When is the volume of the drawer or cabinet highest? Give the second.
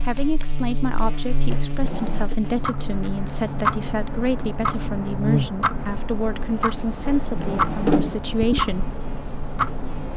8 s.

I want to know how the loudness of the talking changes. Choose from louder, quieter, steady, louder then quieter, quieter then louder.
steady.